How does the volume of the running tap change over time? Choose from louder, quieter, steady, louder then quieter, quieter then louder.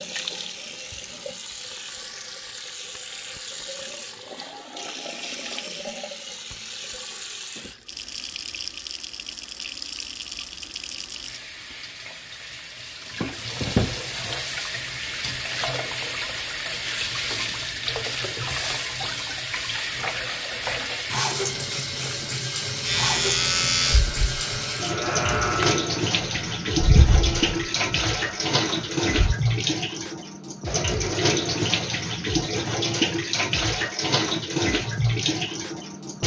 louder.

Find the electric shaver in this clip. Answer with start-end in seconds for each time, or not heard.
22.9-29.4.